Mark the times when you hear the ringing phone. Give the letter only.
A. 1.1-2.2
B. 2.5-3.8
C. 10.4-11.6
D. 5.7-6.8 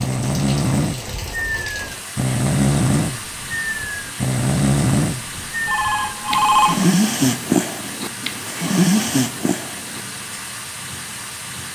D.